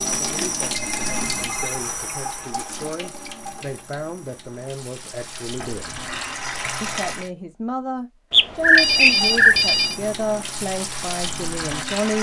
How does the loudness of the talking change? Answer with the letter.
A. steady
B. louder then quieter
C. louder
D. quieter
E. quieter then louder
C.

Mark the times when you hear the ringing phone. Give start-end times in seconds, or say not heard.
0.9-1.8, 5.5-6.3, 8.3-9.9.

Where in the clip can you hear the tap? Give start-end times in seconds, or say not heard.
0.0-7.3, 8.6-12.1.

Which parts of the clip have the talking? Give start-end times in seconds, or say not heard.
0.0-6.0, 6.8-12.1.